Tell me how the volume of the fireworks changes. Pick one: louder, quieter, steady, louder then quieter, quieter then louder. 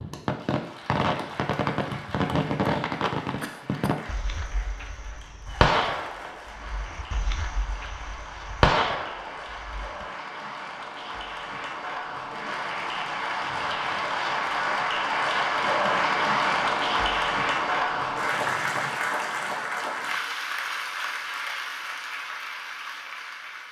quieter then louder.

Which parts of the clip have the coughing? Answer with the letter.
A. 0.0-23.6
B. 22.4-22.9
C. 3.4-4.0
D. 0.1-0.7
C.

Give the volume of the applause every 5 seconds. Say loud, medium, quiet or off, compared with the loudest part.
quiet, quiet, medium, loud, medium.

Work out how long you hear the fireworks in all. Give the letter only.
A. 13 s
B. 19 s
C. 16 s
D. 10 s
D.